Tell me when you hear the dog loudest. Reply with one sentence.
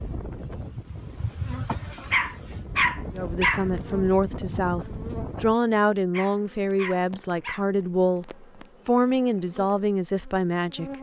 The loudest moment of the dog is at 3 seconds.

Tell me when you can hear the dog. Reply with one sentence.
You can hear the dog from 2.1 to 3.6 s and from 6.1 to 7.6 s.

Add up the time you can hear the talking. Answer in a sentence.
You can hear the talking for 8 seconds altogether.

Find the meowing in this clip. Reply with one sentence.
The meowing can't be heard in this clip.